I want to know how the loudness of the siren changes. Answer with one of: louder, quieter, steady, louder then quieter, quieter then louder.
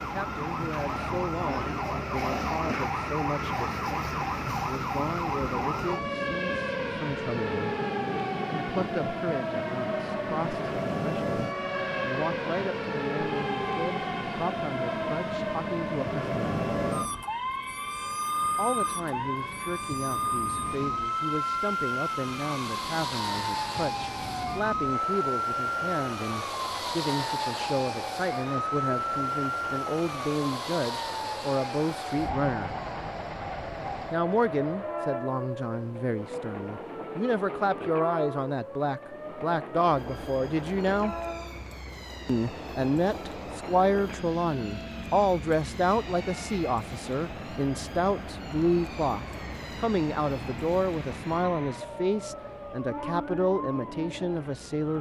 quieter.